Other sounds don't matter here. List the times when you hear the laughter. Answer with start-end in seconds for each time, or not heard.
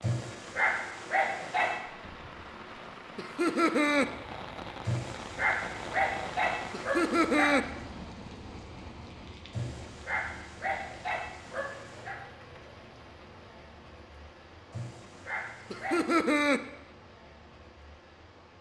3.1-4.0, 6.7-7.7, 15.7-16.6.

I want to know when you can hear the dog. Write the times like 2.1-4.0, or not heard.
0.0-1.8, 4.8-7.5, 9.5-12.2, 14.7-16.1.